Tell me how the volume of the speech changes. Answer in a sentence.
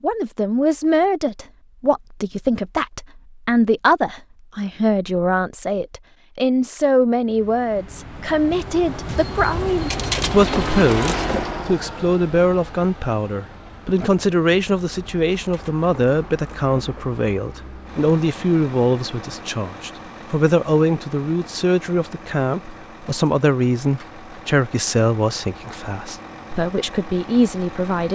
The volume of the speech stays about the same.